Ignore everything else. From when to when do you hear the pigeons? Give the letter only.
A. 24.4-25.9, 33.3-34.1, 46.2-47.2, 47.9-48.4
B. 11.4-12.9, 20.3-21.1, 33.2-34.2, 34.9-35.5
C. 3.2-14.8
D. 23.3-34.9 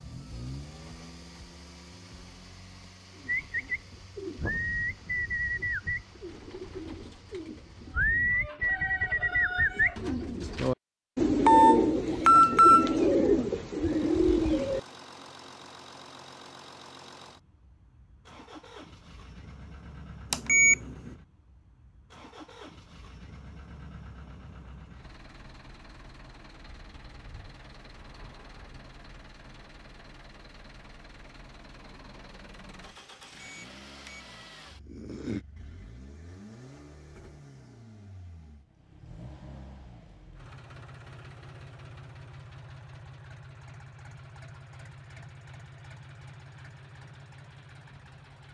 C.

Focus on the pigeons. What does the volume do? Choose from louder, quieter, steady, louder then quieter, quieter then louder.
quieter then louder.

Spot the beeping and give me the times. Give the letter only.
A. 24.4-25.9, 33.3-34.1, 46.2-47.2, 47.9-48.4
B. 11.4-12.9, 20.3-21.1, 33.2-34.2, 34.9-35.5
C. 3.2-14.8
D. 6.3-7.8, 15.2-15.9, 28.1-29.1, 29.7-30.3
B.